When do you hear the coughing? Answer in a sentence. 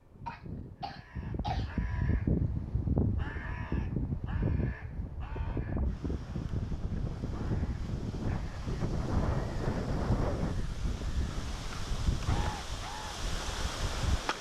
You can hear the coughing from 0.2 to 1.7 s.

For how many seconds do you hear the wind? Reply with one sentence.
The wind can be heard for 14 seconds in total.